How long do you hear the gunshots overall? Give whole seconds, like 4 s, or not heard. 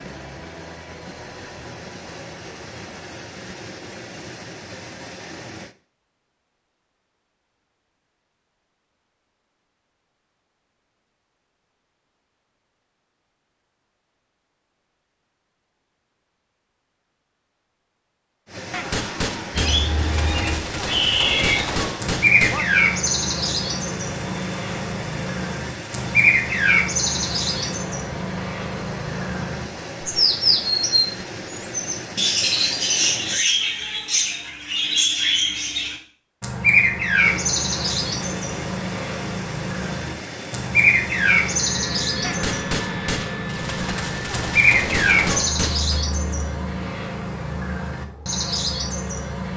8 s.